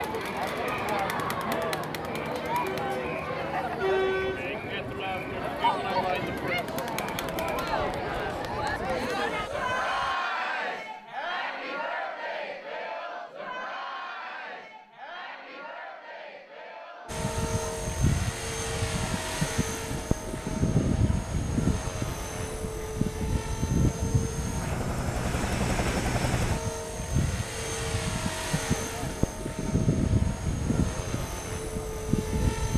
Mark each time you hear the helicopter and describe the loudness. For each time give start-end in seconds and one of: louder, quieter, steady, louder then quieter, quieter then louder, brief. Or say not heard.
0.0-10.2 steady
17.1-32.7 steady.